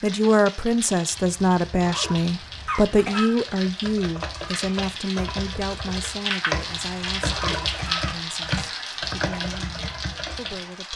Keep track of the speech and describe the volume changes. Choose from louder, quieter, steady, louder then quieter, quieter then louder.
quieter.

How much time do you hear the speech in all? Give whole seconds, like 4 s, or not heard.
11 s.